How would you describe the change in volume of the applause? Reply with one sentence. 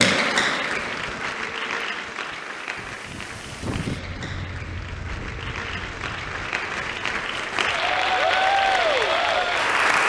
The loudness of the applause goes down, then up.